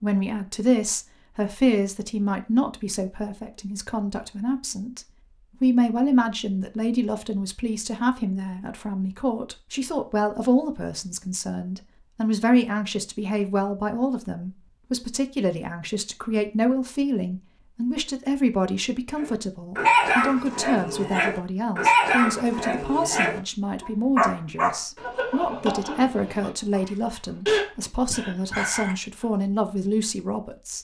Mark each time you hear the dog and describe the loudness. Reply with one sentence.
You can hear the dog from 19.1 to 28.9 s, getting quieter then louder.